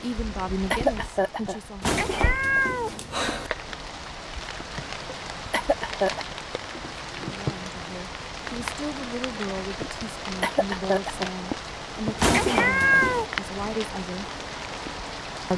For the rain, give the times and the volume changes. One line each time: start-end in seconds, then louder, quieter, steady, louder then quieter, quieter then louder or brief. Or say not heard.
0.0-15.5 louder.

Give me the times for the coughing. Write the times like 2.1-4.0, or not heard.
0.7-1.6, 5.5-6.2, 10.4-11.3.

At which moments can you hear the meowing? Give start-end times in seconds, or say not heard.
1.8-3.5, 12.2-13.2.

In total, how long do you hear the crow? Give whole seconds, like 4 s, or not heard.
not heard.